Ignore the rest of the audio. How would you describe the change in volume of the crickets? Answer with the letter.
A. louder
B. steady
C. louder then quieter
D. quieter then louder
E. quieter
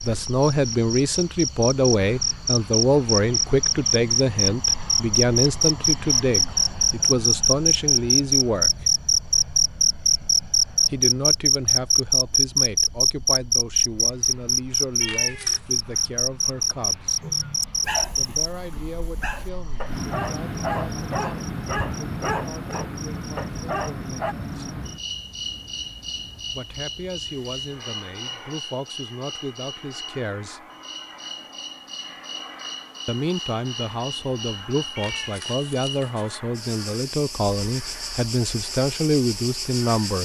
E.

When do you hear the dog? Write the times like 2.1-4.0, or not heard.
17.2-24.4.